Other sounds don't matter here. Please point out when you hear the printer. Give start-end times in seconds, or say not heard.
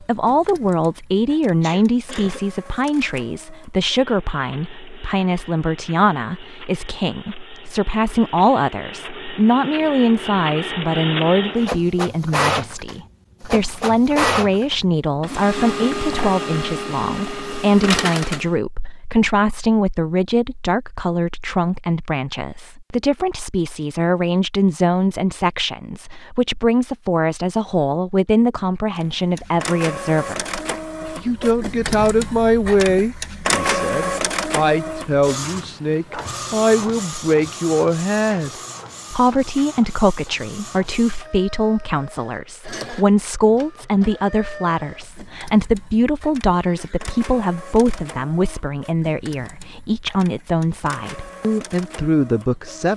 0.0-18.5, 28.9-52.9.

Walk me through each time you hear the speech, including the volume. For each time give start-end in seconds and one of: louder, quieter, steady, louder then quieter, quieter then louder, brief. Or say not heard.
0.0-38.5 steady
39.1-52.9 steady.